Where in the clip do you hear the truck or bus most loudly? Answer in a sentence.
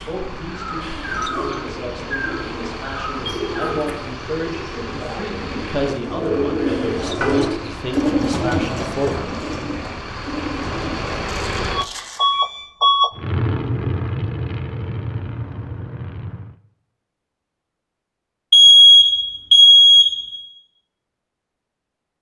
The volume of the truck or bus peaks at 13 seconds.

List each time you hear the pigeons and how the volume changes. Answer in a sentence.
The pigeons can be heard from 0.5 to 11.3 s, getting louder then quieter.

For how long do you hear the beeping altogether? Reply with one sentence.
You can hear the beeping for 4 seconds altogether.